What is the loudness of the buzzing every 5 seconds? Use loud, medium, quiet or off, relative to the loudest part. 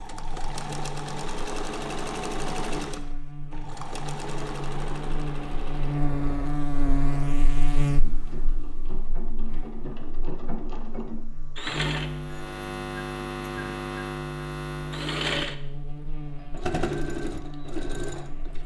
medium, loud, loud, medium.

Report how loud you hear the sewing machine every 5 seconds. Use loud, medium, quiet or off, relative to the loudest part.
loud, medium, loud, loud.